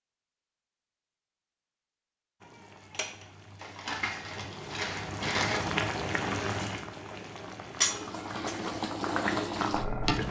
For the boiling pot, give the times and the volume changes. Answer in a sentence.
You can hear the boiling pot from 2.4 to 10.2 s, getting louder.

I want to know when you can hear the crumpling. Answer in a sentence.
The crumpling can be heard from 3.5 to 5.6 s.